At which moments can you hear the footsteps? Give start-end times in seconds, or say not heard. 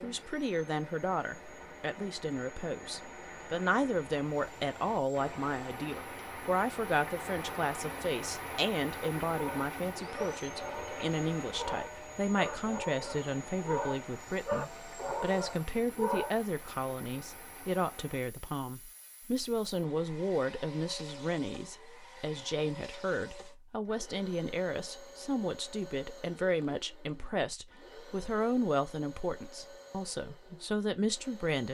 not heard.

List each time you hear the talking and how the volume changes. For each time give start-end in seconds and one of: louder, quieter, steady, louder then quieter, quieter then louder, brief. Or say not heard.
0.0-31.6 steady.